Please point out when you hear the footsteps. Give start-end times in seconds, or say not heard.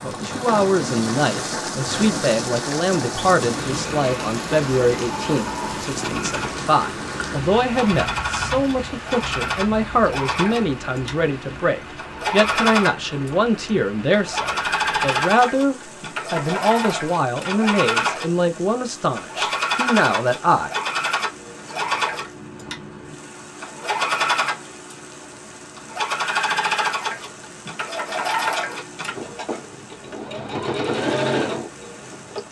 not heard.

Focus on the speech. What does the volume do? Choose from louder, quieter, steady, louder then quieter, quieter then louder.
steady.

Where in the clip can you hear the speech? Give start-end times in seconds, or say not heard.
0.0-20.7.